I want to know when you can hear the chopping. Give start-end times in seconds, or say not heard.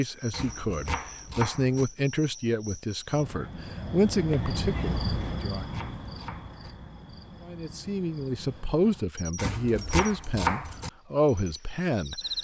0.3-1.9, 5.2-6.7, 9.3-10.9.